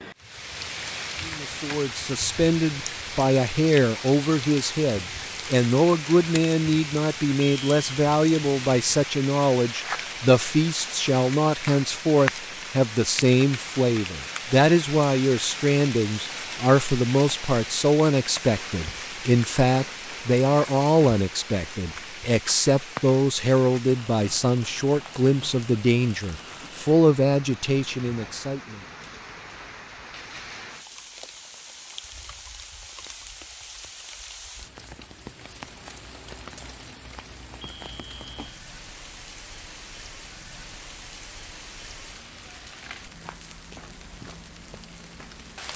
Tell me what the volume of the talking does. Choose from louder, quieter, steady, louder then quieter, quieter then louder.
steady.